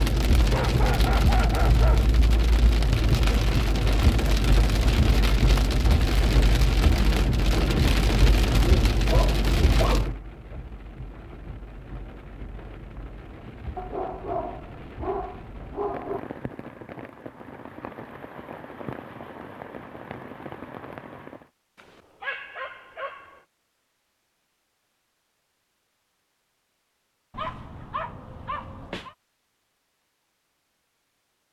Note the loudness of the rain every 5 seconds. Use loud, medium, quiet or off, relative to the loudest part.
loud, loud, quiet, quiet, quiet, off, off.